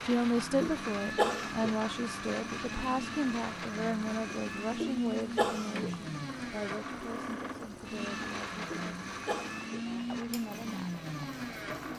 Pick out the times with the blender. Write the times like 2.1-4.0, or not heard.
0.0-11.9.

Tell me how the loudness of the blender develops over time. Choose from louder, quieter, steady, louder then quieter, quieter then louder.
steady.